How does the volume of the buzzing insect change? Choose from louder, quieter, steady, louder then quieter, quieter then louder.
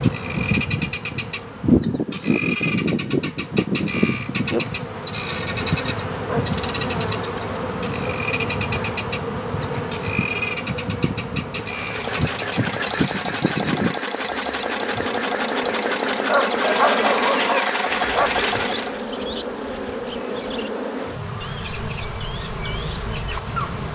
quieter.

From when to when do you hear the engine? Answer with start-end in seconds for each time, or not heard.
11.6-19.1.